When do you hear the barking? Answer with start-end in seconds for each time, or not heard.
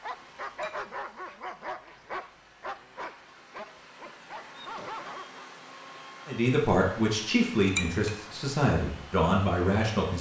0.0-5.5.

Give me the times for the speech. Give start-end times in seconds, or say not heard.
6.2-10.1.